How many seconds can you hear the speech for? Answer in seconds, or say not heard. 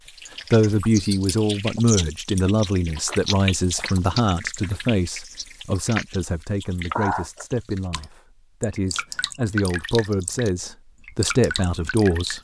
12 s.